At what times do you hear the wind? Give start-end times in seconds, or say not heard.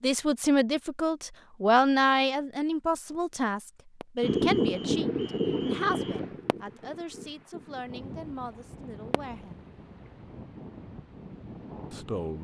4.2-12.3.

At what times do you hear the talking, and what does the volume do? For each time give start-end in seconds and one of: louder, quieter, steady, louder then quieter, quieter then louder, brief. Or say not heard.
0.0-9.7 quieter
11.9-12.3 brief.